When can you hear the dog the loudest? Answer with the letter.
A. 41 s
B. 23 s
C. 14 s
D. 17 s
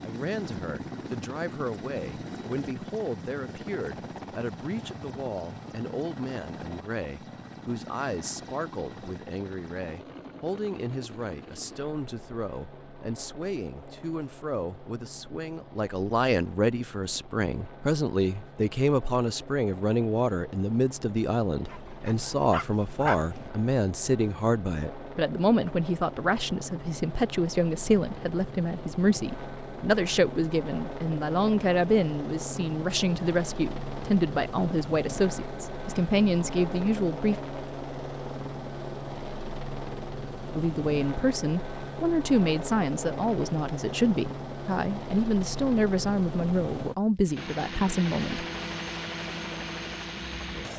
B.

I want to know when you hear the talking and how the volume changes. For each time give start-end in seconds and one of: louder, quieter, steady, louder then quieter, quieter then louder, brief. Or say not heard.
0.0-37.4 louder
40.5-48.5 steady.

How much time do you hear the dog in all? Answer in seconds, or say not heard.
2 s.